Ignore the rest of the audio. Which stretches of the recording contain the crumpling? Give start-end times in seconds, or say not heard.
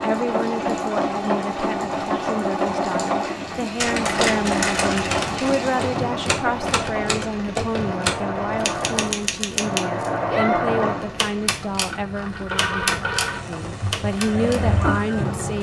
3.8-5.6.